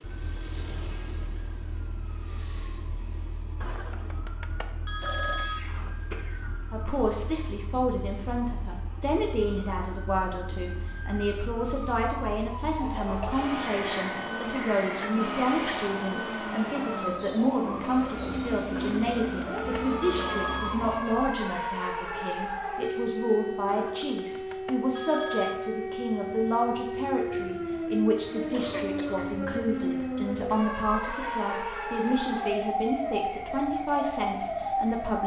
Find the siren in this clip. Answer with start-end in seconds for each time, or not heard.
0.0-35.2.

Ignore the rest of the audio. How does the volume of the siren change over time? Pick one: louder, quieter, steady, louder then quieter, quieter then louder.
louder.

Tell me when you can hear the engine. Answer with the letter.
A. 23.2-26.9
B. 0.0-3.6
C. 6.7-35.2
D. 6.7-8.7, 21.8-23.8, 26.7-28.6
B.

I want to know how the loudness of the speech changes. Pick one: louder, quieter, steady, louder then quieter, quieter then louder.
steady.